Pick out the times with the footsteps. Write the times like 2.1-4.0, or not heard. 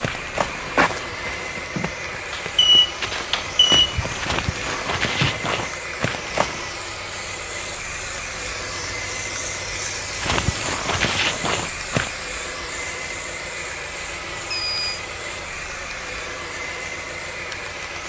0.0-6.7, 10.2-12.1.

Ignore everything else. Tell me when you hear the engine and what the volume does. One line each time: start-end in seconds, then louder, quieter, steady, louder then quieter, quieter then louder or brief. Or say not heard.
0.0-18.0 steady.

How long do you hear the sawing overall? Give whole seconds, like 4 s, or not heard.
not heard.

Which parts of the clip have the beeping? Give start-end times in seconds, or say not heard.
2.3-4.0, 14.4-15.0.